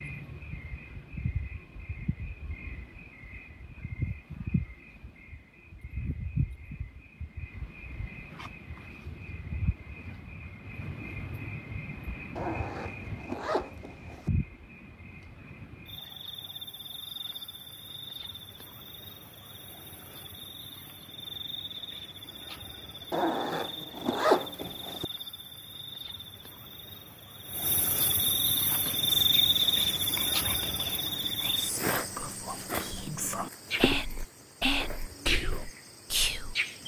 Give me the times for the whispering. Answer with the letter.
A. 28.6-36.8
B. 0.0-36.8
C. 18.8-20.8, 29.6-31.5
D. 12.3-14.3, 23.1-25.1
A.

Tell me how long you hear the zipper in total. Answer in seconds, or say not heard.
4 s.